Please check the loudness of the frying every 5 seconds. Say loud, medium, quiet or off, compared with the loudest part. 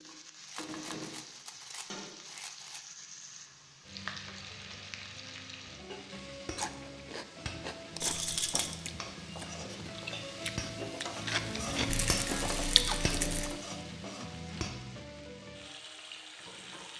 medium, medium, loud, medium.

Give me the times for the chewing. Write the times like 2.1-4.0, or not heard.
6.5-13.4.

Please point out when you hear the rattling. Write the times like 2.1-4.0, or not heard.
0.5-2.9, 8.0-8.8, 11.8-13.6.